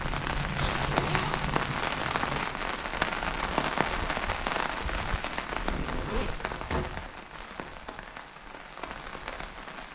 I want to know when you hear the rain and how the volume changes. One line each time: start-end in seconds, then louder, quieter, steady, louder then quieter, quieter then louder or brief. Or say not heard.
0.0-9.9 quieter.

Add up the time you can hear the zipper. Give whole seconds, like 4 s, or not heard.
2 s.